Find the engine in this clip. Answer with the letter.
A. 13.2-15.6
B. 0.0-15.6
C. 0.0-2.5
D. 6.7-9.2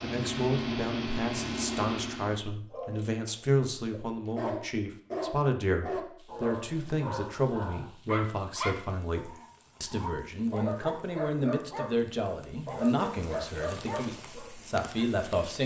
C.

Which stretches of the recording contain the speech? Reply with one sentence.
The speech can be heard from 0.0 to 15.6 s.